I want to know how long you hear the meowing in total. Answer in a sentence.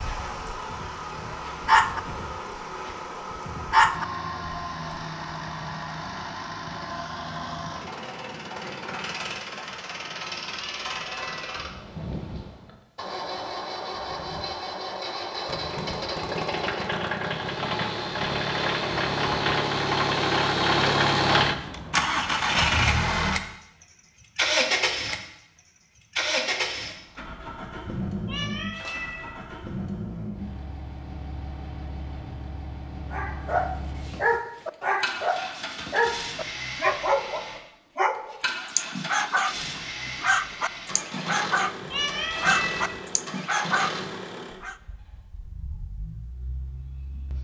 The meowing can be heard for 3 seconds in total.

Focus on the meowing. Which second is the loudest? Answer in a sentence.
The loudest moment of the meowing is at 42 seconds.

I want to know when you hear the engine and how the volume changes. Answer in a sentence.
You can hear the engine from 0.0 to 47.3 s, getting louder then quieter.